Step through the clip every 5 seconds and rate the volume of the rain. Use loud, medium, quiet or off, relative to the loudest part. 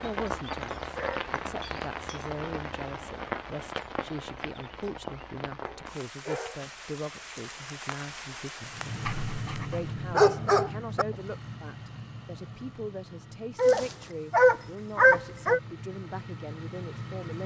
loud, medium, off, off.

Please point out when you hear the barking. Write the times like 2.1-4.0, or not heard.
0.9-2.2, 5.6-6.7, 9.1-11.1, 13.6-15.6.